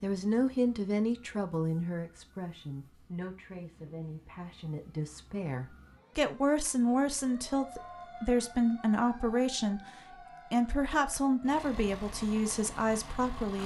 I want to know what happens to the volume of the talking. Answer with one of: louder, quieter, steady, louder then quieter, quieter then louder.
quieter then louder.